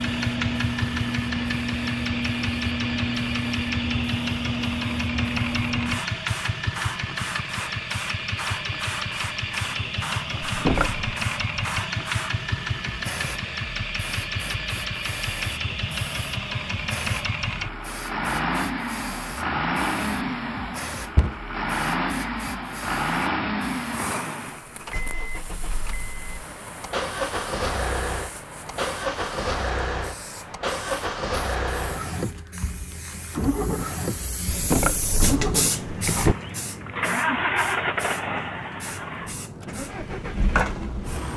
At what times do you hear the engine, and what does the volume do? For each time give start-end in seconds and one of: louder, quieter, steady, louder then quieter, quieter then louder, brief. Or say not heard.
0.0-41.3 steady.